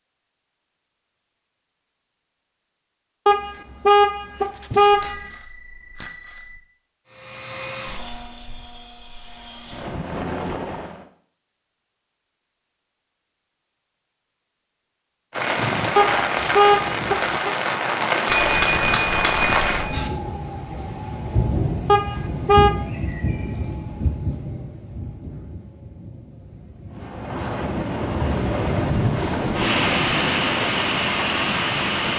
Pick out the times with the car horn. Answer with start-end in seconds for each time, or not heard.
3.2-5.2, 15.9-17.6, 21.9-22.8.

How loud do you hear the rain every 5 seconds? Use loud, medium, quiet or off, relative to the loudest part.
off, off, off, loud, medium, medium, loud.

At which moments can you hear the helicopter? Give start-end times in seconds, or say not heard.
7.0-11.1, 26.9-32.1.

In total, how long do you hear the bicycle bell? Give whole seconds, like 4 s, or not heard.
4 s.